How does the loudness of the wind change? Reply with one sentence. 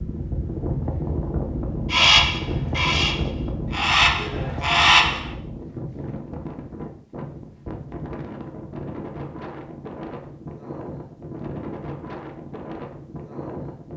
The volume of the wind goes down.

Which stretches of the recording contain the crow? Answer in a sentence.
You can hear the crow from 1.9 to 5.2 s.